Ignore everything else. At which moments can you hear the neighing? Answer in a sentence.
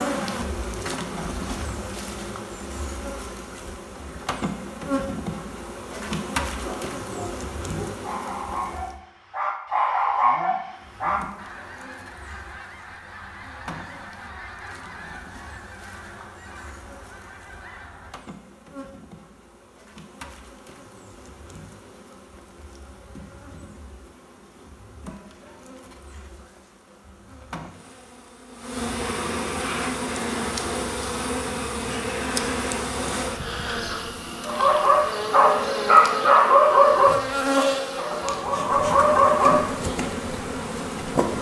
The neighing can't be heard in this clip.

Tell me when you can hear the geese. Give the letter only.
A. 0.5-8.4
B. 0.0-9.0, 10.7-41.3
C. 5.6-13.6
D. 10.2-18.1
D.